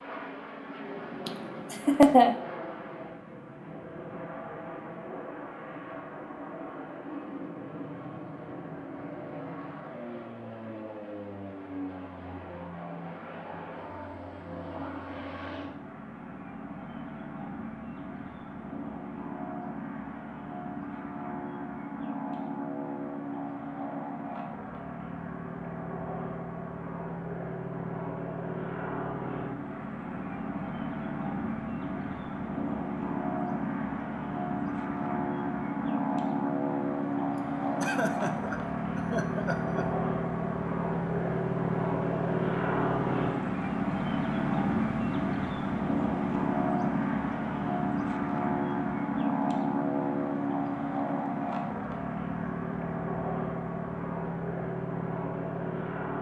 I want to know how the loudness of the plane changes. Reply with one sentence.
The volume of the plane goes up.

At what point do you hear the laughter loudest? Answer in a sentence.
The volume of the laughter peaks at 2 seconds.